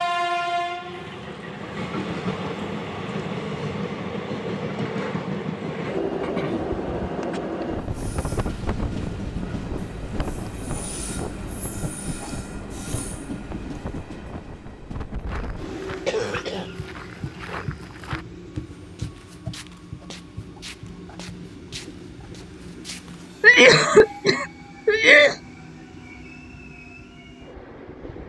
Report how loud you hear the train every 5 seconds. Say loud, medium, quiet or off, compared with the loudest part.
loud, loud, medium, medium, quiet, quiet.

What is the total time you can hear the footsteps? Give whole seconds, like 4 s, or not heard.
8 s.